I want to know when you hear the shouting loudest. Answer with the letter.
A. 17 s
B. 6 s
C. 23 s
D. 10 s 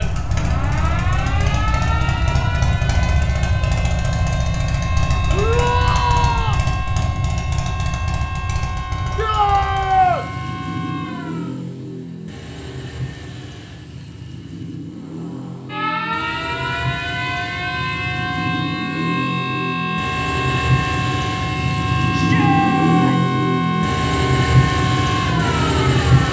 D.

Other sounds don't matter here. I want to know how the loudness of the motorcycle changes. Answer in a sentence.
The volume of the motorcycle goes down, then up.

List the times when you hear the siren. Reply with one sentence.
You can hear the siren from 0.2 to 11.7 s and from 15.0 to 26.2 s.